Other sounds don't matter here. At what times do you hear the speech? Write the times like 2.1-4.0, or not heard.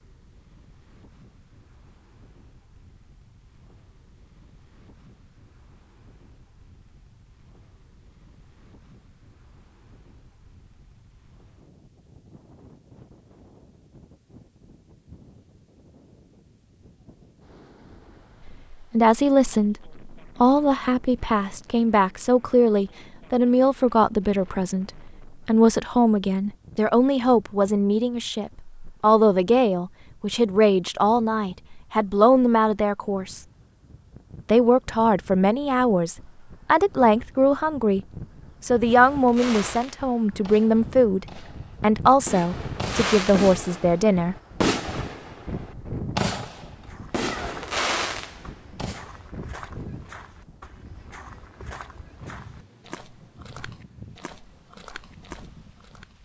18.4-33.4, 34.5-38.0, 38.6-44.4.